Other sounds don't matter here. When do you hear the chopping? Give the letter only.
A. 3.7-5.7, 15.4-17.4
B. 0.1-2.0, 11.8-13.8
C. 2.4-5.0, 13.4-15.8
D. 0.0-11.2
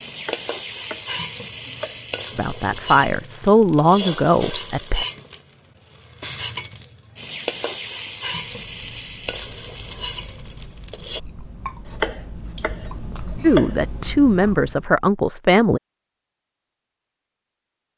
B.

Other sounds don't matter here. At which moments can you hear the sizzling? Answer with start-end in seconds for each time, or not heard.
0.0-11.2.